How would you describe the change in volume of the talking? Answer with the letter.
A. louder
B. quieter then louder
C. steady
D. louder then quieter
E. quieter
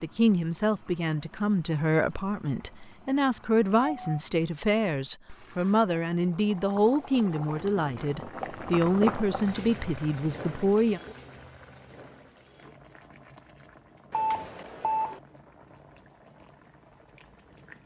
C.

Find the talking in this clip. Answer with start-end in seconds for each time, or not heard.
0.0-11.0.